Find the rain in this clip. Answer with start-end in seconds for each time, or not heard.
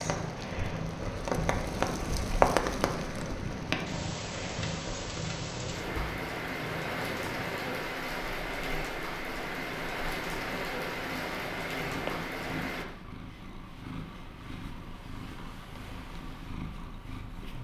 0.0-12.8.